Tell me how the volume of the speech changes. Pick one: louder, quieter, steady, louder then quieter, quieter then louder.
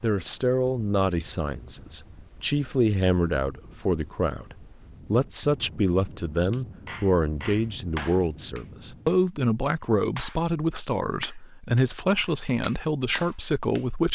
steady.